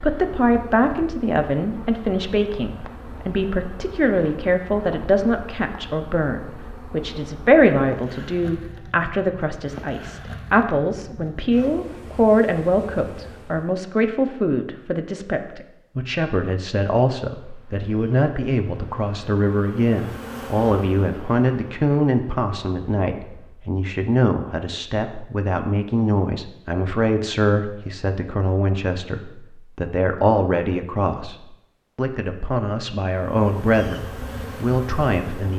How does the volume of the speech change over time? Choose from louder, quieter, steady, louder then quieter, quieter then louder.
steady.